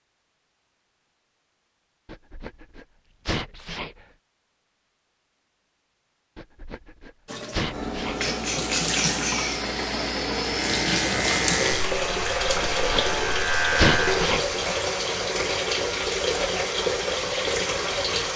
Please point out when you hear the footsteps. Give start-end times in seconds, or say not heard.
not heard.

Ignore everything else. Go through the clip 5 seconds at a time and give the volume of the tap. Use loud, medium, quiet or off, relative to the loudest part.
off, loud, loud, loud.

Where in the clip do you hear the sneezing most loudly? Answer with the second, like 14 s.
14 s.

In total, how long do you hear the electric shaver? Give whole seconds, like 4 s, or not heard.
4 s.